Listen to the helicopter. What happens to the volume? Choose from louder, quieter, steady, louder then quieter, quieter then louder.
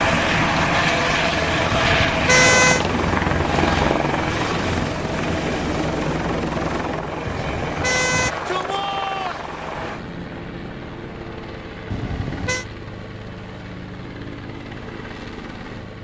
quieter.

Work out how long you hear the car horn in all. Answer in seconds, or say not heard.
3 s.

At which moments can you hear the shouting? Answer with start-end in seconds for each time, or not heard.
8.1-9.4.